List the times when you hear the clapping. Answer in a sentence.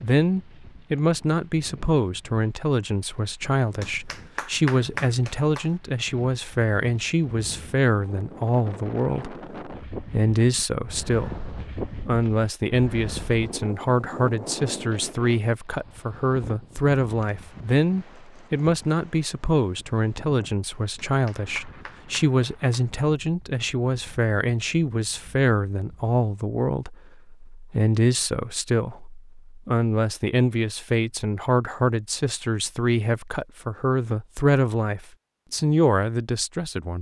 You can hear the clapping from 3.8 to 5.7 s and from 20.9 to 22.9 s.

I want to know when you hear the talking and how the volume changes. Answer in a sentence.
The talking can be heard from 0.0 to 36.9 s, at a steady volume.